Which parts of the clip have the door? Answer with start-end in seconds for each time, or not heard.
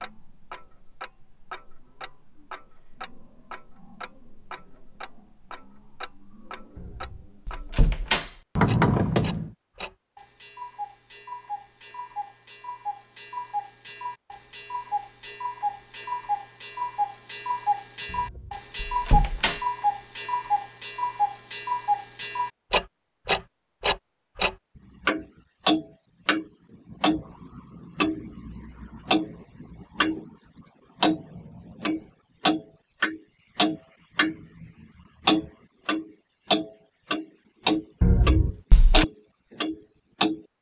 6.8-9.5, 18.1-19.6, 38.0-39.0.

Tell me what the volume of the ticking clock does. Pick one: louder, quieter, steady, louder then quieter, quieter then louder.
louder.